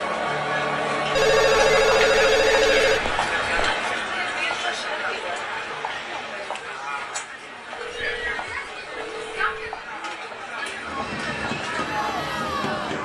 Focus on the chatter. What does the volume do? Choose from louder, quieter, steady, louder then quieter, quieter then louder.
quieter.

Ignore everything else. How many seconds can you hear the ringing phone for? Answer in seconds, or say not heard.
5 s.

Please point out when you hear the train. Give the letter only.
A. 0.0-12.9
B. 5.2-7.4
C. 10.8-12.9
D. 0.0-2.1
C.